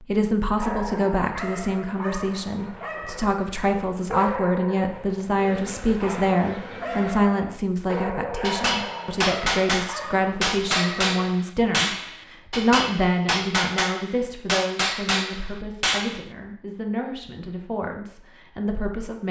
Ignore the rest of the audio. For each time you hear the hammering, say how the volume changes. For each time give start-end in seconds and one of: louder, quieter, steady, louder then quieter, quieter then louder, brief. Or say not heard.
8.4-16.2 steady.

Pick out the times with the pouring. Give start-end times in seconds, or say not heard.
not heard.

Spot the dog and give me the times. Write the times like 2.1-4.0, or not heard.
0.6-11.3.